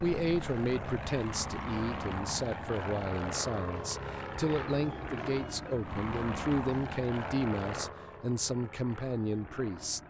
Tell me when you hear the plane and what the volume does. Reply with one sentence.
The plane can be heard from 0.0 to 10.0 s, getting quieter.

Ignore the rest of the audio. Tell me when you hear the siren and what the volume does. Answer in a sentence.
The siren can't be heard in this clip.